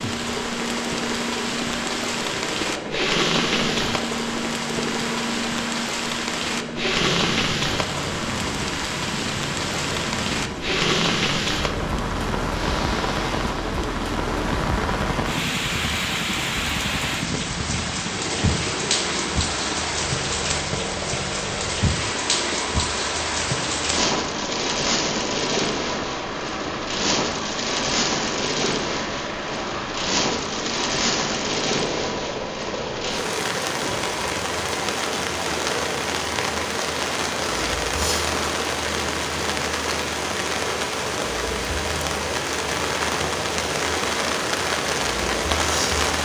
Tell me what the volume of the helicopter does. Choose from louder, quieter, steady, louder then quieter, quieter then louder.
steady.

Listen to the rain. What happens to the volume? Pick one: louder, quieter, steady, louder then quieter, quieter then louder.
steady.